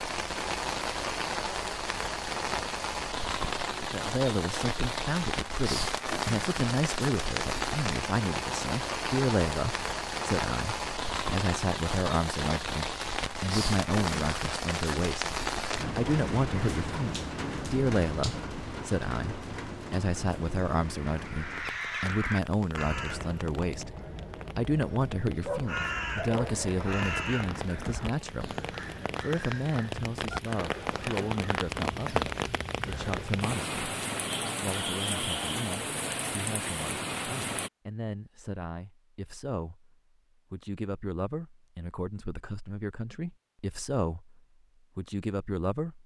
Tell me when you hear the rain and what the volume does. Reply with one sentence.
The rain can be heard from 0.0 to 37.7 s, getting quieter then louder.